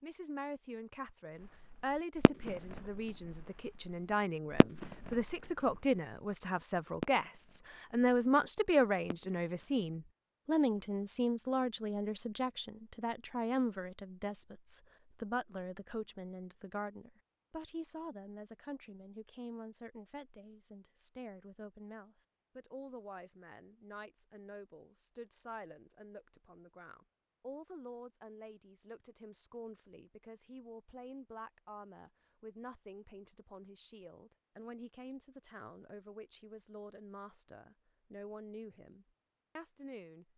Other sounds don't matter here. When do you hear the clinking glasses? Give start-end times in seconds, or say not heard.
not heard.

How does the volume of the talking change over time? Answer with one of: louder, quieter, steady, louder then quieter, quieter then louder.
quieter.